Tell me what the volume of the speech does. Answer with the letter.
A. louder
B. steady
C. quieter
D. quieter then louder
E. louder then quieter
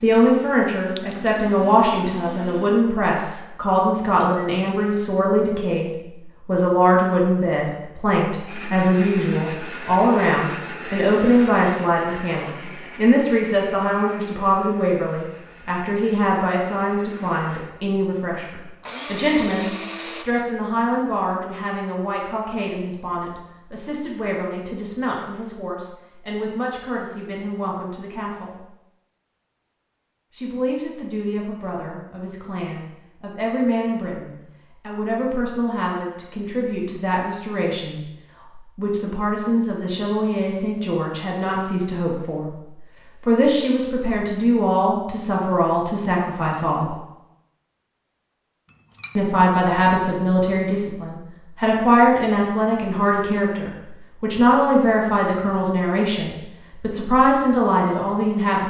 D.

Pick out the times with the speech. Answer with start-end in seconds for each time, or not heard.
0.0-28.6, 30.3-47.0, 49.1-58.6.